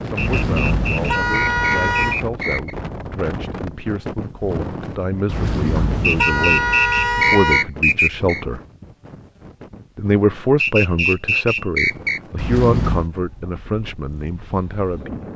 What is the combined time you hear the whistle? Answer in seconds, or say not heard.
7 s.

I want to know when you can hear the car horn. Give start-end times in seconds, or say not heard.
0.1-2.1, 5.2-7.7, 12.3-13.1.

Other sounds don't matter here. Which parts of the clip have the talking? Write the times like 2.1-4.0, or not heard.
0.0-8.6, 9.9-15.2.